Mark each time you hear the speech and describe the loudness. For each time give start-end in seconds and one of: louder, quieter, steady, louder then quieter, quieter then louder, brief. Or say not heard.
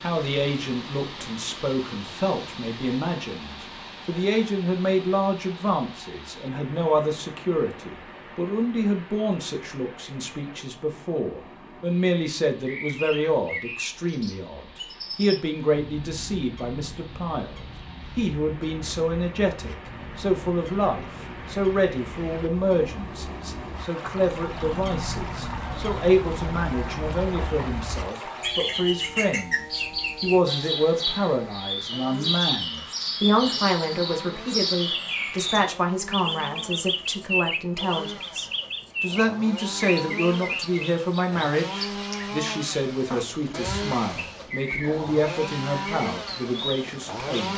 0.0-47.5 steady.